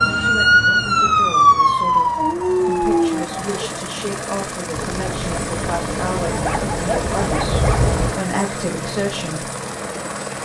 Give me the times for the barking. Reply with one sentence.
The barking can be heard from 2.1 to 3.5 s and from 6.3 to 8.0 s.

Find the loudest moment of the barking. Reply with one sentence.
The volume of the barking peaks at 3 seconds.